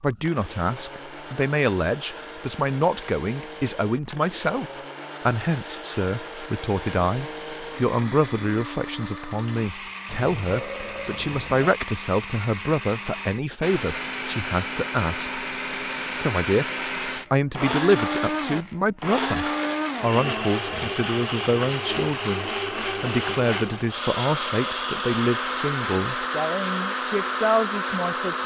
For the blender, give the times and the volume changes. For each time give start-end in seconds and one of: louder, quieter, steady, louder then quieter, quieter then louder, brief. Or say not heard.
0.0-28.4 louder.